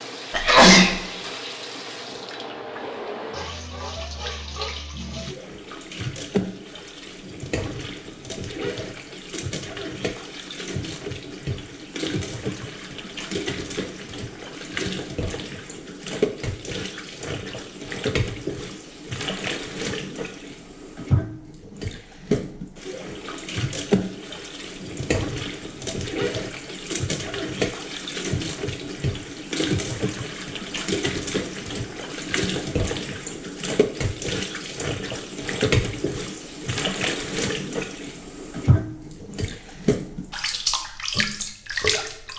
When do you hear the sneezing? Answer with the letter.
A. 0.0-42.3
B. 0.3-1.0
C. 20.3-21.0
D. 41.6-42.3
B.